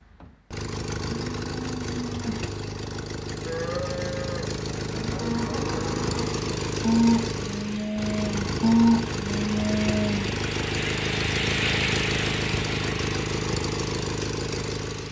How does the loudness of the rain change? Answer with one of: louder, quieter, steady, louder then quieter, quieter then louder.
louder then quieter.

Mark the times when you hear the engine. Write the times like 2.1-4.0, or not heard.
0.0-15.0.